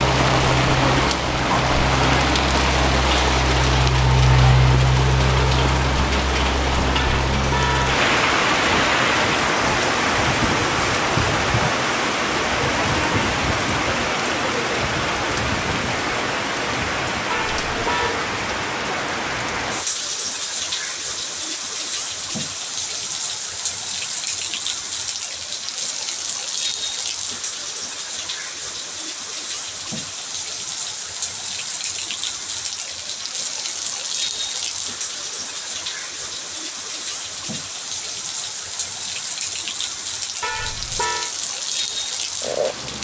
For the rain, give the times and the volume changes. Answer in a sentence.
You can hear the rain from 0.0 to 42.9 s, getting quieter.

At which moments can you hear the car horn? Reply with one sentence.
You can hear the car horn from 7.0 to 8.0 s, from 17.3 to 18.1 s and from 40.4 to 41.4 s.